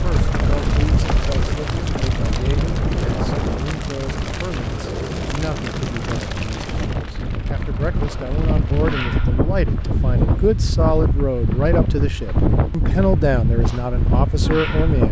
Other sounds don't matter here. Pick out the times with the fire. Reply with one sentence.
The fire can be heard from 0.0 to 9.1 s.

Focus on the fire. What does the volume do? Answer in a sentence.
The volume of the fire goes down.